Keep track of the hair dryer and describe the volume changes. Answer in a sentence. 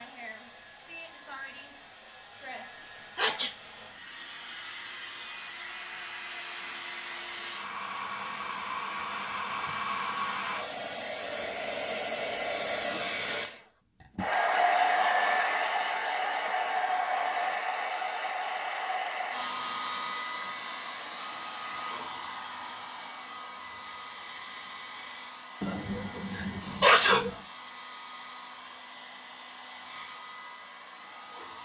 The loudness of the hair dryer goes up, then down.